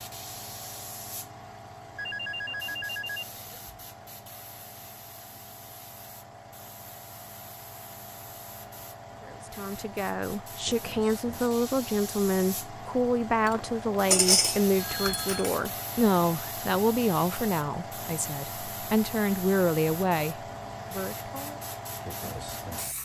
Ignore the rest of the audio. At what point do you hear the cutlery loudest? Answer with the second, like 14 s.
14 s.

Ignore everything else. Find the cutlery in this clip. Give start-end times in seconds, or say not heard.
13.4-15.6.